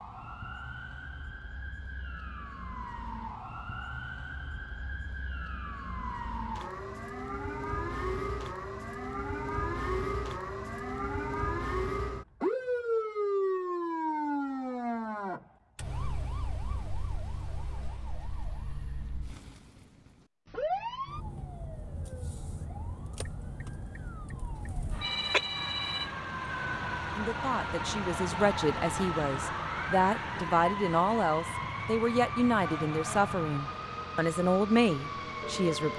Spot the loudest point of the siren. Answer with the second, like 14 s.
13 s.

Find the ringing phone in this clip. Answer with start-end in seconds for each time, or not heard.
24.6-26.1.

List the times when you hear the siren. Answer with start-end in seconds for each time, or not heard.
0.0-35.9.